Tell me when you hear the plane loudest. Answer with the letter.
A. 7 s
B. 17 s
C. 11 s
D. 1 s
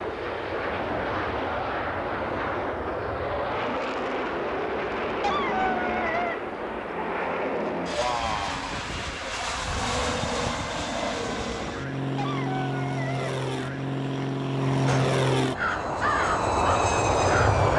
B.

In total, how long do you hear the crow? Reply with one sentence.
The crow can be heard for 2 seconds in total.